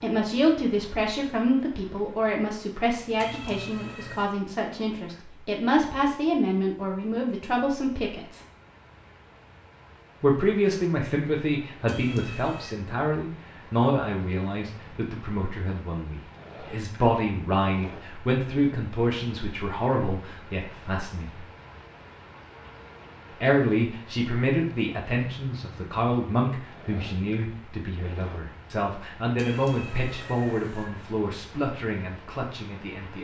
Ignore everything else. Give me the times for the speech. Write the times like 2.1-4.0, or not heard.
0.0-8.4, 10.2-21.4, 23.4-33.1.